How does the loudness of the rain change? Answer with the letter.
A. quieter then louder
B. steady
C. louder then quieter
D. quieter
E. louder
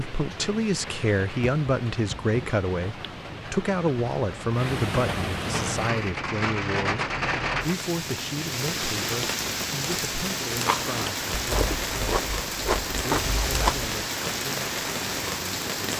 E.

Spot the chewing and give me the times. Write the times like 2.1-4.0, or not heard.
10.6-13.9.